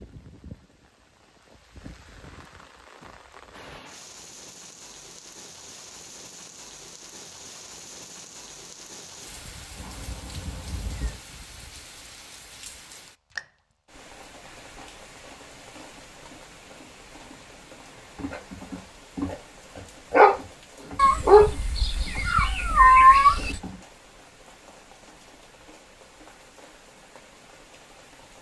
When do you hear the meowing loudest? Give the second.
23 s.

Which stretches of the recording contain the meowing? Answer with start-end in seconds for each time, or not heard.
9.8-11.2, 20.9-23.6.